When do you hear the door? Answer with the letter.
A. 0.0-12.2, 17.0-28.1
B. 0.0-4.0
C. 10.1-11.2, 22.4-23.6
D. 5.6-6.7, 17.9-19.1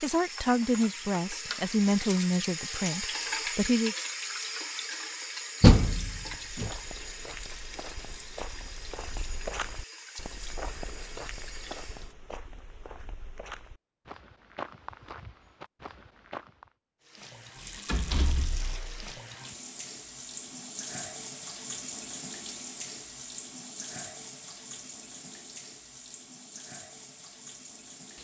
D.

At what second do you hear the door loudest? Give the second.
6 s.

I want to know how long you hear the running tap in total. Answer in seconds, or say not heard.
23 s.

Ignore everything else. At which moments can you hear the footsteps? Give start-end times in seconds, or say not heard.
6.2-16.7.